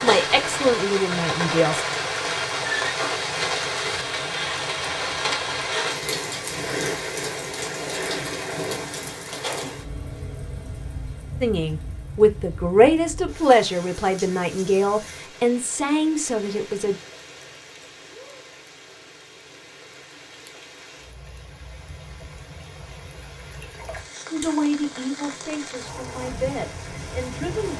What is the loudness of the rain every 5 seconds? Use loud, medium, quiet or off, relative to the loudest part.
loud, loud, quiet, quiet, quiet, medium.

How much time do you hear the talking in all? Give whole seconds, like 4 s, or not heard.
11 s.